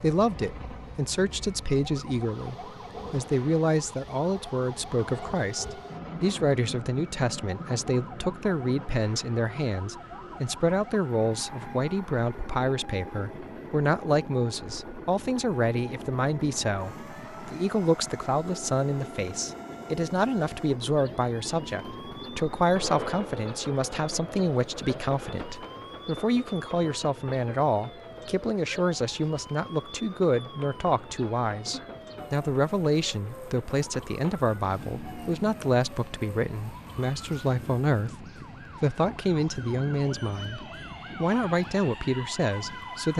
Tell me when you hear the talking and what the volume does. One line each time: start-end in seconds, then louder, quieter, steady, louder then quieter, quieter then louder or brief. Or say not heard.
0.0-43.1 steady.